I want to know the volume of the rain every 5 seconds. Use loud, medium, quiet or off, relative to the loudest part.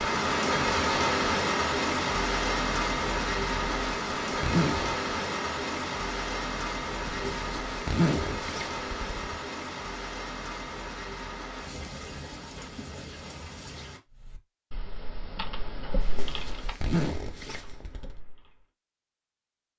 loud, medium, quiet, off.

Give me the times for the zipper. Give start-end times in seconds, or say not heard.
3.6-5.0, 7.0-9.3, 16.0-18.1.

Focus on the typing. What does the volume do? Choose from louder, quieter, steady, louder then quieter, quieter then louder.
louder then quieter.